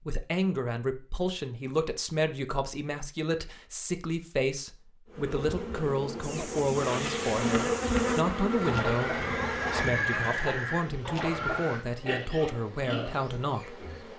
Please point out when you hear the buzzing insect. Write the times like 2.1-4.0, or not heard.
5.1-14.1.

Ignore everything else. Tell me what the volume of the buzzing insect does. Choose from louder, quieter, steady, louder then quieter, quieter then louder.
louder then quieter.